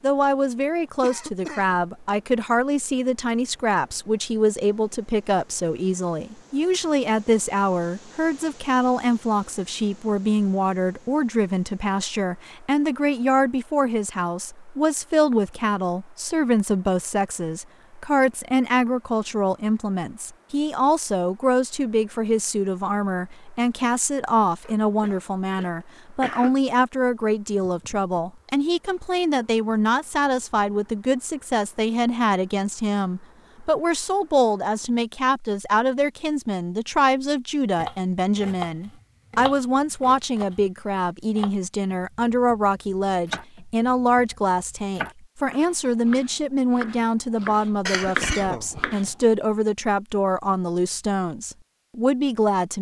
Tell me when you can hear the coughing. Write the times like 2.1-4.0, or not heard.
1.0-1.8, 24.6-26.6, 47.9-49.1.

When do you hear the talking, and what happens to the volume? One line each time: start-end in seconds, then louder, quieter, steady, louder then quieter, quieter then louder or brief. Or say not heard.
0.0-52.7 steady.